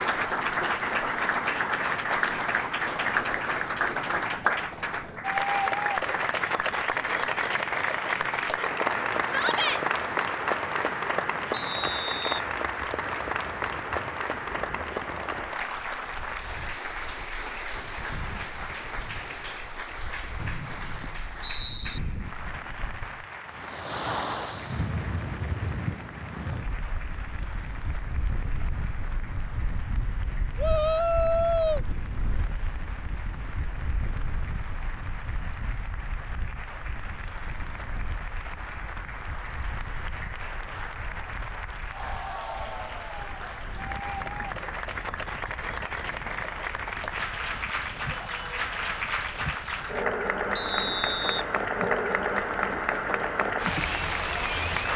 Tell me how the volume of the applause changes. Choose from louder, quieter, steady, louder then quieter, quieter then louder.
quieter then louder.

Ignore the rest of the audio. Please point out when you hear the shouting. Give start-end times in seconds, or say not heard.
9.2-9.8, 30.6-31.8, 48.1-48.7.